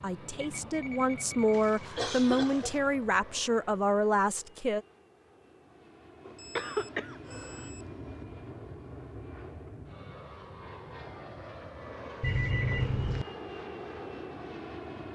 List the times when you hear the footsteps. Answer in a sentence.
The footsteps can't be heard in this clip.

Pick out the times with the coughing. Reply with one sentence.
You can hear the coughing from 1.5 to 2.8 s, from 6.5 to 7.7 s and from 12.2 to 13.2 s.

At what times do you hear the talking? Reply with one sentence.
The talking can be heard from 0.0 to 4.8 s.